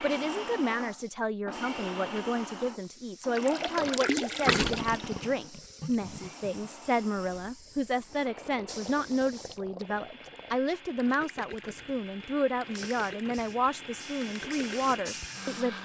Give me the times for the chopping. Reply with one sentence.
You can't hear the chopping here.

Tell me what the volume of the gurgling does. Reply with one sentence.
The loudness of the gurgling goes down.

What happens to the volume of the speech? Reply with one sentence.
The volume of the speech stays about the same.